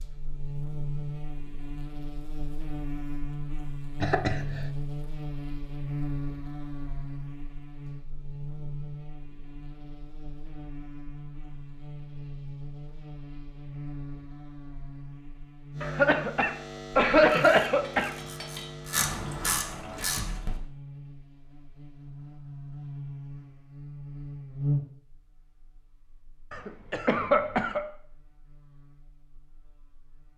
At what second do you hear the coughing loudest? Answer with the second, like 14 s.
17 s.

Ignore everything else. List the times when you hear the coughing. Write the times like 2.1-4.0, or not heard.
4.0-4.7, 15.8-18.1, 26.5-27.9.